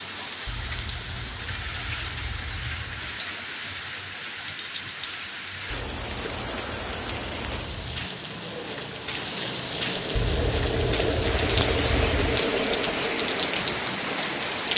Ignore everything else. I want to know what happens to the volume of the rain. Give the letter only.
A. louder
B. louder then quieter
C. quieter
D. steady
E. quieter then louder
A.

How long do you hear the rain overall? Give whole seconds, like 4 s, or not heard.
15 s.